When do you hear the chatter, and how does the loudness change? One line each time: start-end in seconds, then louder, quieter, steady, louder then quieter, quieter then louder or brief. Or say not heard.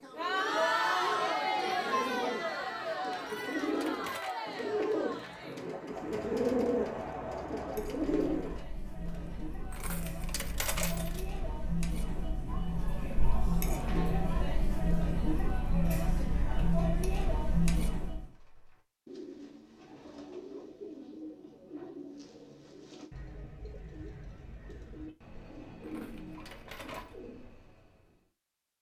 0.0-18.3 quieter then louder.